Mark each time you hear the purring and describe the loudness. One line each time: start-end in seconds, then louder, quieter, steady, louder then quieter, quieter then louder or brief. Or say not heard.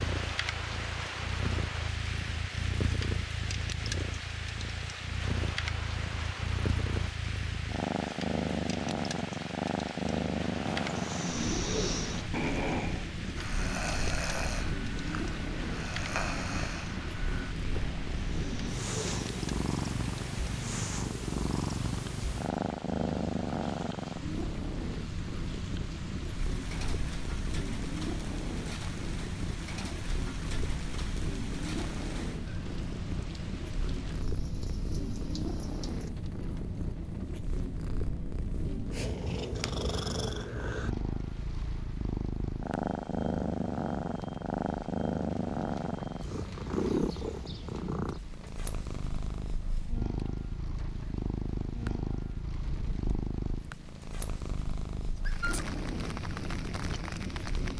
0.0-57.7 steady.